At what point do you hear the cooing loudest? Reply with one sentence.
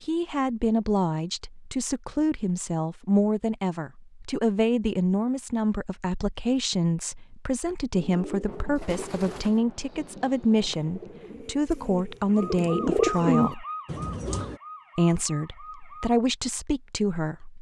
The loudest moment of the cooing is at 13 seconds.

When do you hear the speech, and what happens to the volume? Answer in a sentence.
You can hear the speech from 0.0 to 13.7 s, at a steady volume; and briefly from 14.9 to 17.5 s.